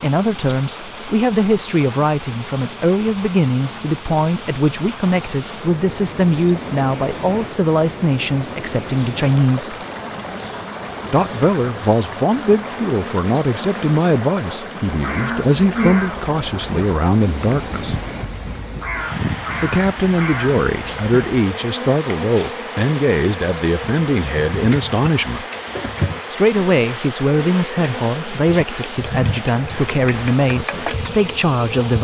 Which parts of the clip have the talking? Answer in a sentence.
The talking can be heard from 0.0 to 9.8 s, from 11.1 to 18.0 s, from 19.6 to 25.4 s and from 26.3 to 31.9 s.